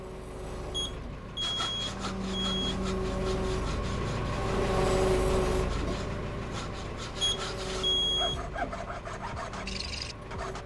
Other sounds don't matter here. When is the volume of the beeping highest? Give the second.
8 s.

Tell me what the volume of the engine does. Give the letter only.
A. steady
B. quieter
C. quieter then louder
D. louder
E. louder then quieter
E.